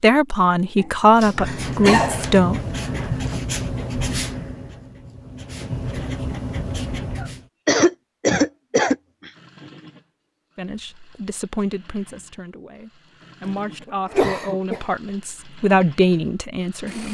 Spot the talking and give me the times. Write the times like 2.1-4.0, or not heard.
0.0-2.6, 10.6-17.0.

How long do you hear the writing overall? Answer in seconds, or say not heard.
6 s.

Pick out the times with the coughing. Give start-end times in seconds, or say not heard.
0.8-2.2, 7.2-9.3, 13.8-14.8.